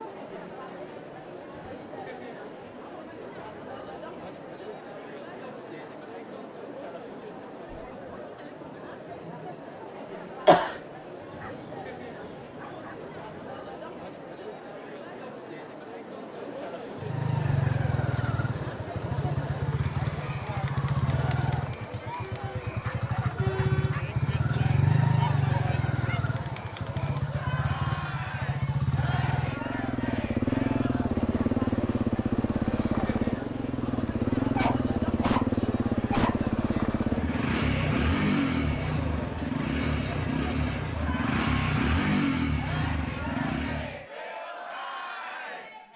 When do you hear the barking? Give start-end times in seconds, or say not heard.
11.2-13.5, 22.6-24.1, 34.5-36.4.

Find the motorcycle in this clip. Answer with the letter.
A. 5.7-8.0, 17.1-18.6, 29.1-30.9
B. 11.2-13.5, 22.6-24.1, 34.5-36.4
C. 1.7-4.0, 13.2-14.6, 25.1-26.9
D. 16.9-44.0
D.